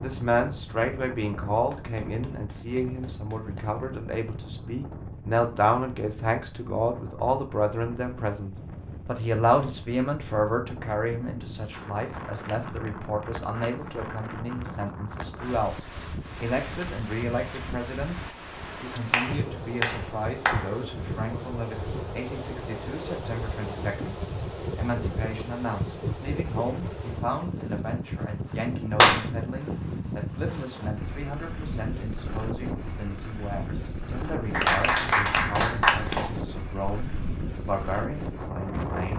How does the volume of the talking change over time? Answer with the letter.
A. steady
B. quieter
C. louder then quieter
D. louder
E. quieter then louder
B.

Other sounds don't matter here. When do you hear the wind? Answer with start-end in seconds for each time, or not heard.
0.0-39.1.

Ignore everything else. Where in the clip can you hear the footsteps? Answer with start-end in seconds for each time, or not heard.
not heard.